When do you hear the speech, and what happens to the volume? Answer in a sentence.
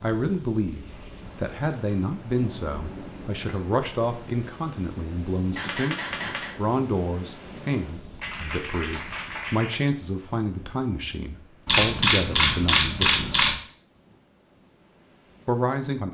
The speech can be heard from 0.0 to 13.3 s, at a steady volume; and briefly from 15.4 to 16.0 s.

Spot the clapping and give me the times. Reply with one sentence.
The clapping can be heard from 8.2 to 9.8 s.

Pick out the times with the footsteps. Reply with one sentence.
The footsteps can't be heard in this clip.